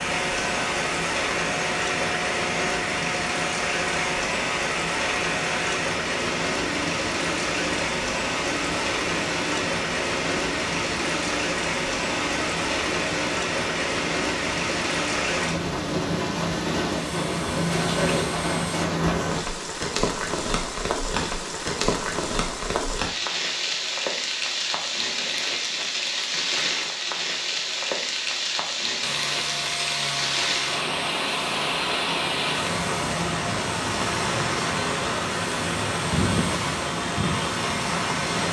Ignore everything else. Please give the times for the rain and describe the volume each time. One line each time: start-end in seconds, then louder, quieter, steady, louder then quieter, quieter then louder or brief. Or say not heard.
0.0-38.4 steady.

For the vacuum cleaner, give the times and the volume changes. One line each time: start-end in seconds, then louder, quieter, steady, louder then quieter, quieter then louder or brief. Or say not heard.
0.0-18.9 steady
29.0-38.4 steady.